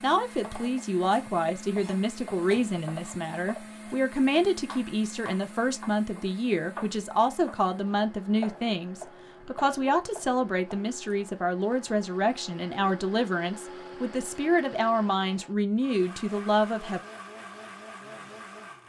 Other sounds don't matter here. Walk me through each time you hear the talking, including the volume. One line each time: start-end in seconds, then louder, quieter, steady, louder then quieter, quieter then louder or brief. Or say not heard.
0.0-17.0 steady.